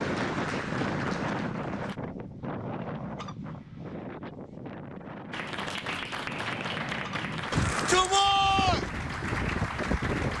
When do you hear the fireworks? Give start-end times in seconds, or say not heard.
not heard.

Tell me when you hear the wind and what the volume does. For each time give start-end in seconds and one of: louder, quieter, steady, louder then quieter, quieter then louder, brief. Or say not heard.
0.0-10.3 quieter then louder.